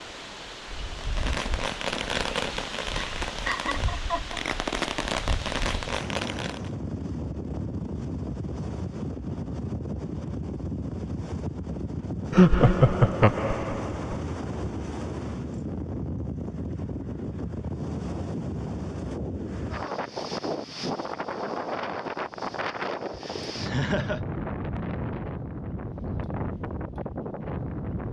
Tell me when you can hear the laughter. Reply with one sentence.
The laughter can be heard from 2.9 to 4.4 s, from 12.3 to 14.2 s and from 23.1 to 24.2 s.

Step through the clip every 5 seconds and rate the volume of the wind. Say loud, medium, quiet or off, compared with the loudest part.
medium, loud, loud, loud, loud, loud.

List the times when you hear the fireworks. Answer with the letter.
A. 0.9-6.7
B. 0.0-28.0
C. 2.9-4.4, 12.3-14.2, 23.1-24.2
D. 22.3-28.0
A.